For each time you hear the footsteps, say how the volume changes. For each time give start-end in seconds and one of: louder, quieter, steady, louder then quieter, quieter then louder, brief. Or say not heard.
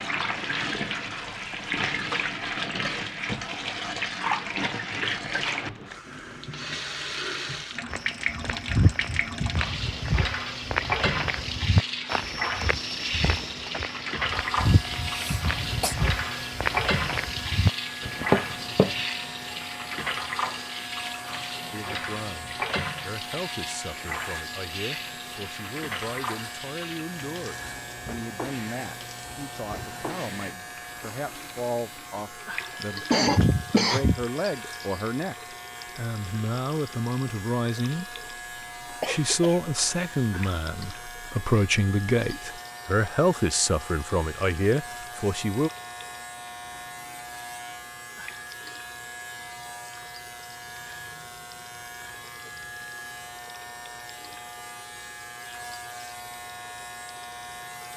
7.9-19.1 quieter then louder.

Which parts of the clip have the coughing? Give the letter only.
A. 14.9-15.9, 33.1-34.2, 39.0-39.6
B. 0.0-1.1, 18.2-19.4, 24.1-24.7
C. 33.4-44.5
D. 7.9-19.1
A.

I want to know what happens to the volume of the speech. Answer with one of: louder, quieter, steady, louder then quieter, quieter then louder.
louder.